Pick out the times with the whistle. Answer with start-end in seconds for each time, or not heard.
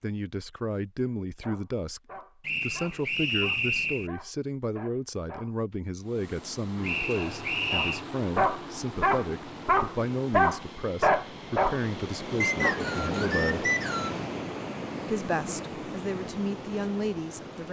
2.5-4.1, 6.8-8.0, 12.4-14.2.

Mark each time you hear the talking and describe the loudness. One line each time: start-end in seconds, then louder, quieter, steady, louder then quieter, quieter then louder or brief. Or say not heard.
0.0-2.0 brief
2.6-13.7 steady
15.1-17.6 brief.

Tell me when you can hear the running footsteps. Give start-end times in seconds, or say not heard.
not heard.